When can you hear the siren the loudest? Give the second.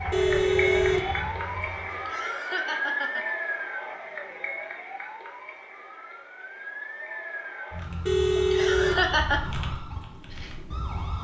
3 s.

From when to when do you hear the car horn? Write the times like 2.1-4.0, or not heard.
0.1-1.3, 8.1-9.2.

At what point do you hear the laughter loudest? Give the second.
9 s.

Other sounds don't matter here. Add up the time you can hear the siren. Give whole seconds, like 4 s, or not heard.
11 s.